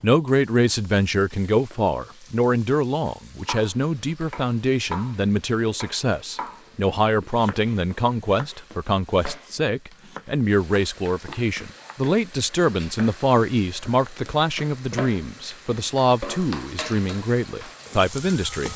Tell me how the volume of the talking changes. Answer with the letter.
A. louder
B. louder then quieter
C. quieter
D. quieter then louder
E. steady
E.